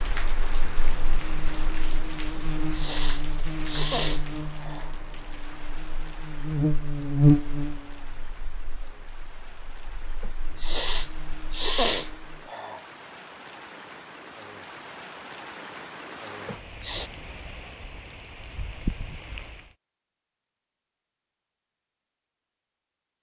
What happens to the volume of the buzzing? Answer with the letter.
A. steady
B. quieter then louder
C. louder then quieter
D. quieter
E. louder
C.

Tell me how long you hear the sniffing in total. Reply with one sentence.
You can hear the sniffing for 6 seconds altogether.